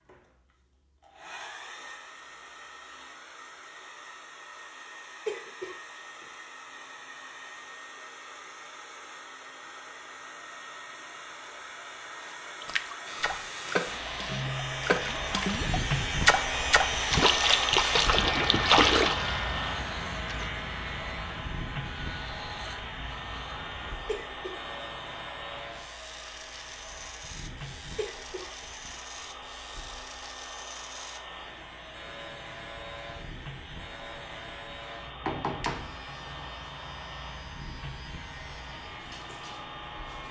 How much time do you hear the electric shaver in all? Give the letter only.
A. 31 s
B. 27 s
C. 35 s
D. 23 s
B.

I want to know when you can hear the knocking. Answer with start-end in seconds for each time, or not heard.
35.2-36.0.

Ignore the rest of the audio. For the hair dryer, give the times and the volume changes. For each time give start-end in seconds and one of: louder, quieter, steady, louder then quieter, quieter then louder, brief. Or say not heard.
0.0-40.2 louder then quieter.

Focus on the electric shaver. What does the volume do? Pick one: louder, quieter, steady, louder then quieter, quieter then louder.
quieter.